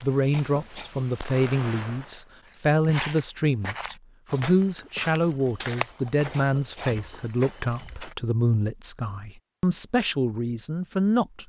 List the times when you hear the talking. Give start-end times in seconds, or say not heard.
0.0-11.4.